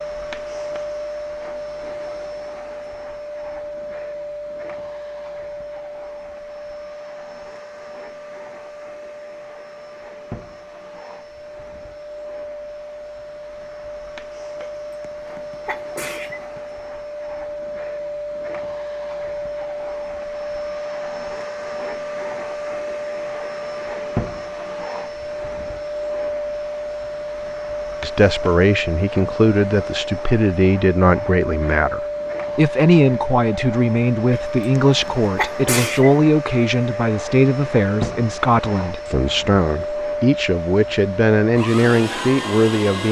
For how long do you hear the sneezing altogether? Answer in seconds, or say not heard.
4 s.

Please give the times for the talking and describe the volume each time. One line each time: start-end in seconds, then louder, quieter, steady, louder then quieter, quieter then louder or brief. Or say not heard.
28.0-43.0 steady.